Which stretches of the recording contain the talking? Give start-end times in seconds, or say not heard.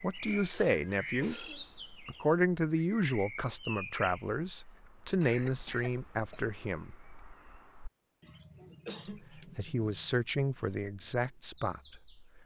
0.0-7.0, 9.1-12.4.